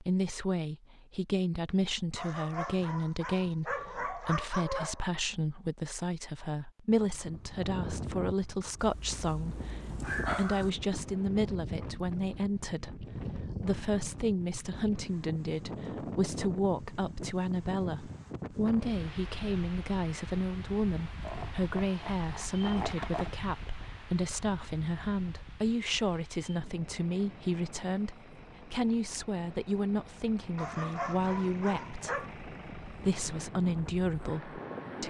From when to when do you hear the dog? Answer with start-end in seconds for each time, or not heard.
2.1-5.1, 8.8-10.7, 21.2-23.3, 30.6-32.3.